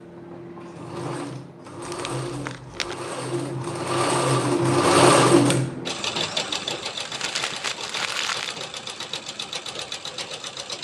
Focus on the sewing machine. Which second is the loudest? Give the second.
5 s.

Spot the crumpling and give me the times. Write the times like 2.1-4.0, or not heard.
1.9-3.0, 7.0-8.6.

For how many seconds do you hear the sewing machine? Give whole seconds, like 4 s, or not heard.
11 s.